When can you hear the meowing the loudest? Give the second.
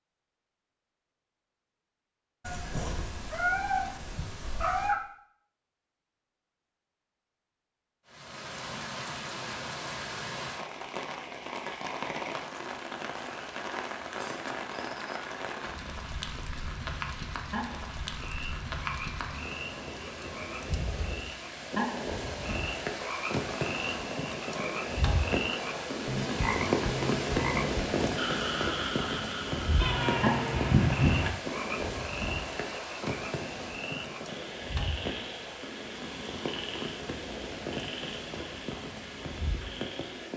31 s.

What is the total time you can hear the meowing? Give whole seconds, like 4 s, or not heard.
4 s.